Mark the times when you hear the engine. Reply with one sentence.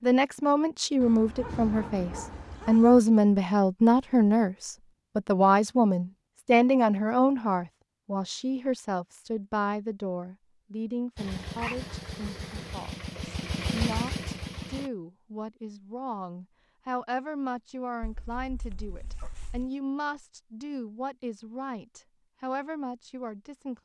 The engine can be heard from 11.2 to 14.9 s.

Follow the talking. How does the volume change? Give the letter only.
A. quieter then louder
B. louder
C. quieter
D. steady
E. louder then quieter
C.